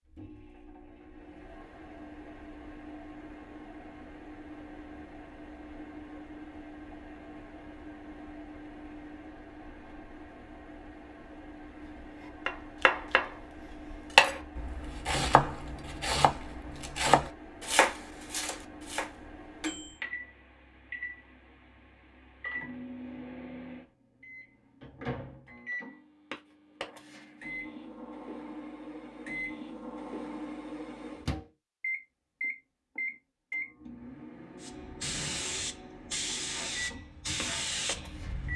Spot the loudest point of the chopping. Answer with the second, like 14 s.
14 s.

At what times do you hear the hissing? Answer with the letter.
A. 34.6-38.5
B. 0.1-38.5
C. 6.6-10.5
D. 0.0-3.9
A.